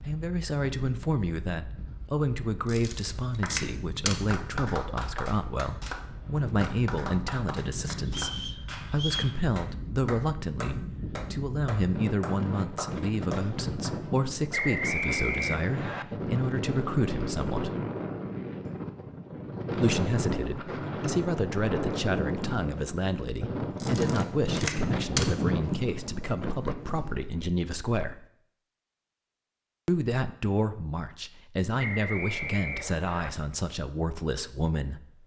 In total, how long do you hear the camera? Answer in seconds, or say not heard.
3 s.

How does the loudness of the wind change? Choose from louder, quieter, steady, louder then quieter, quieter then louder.
louder.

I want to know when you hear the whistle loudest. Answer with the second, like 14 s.
15 s.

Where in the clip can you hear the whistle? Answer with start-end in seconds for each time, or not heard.
8.1-9.3, 14.5-16.1, 31.8-33.3.